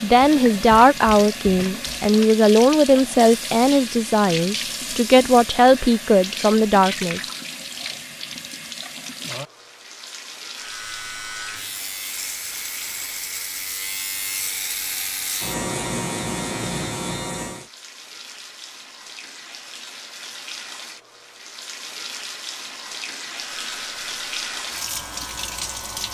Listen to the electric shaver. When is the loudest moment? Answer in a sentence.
The volume of the electric shaver peaks at 16 seconds.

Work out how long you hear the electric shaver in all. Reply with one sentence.
The electric shaver can be heard for 10 seconds in total.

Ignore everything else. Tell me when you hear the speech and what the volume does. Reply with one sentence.
The speech can be heard from 0.0 to 7.2 s, at a steady volume.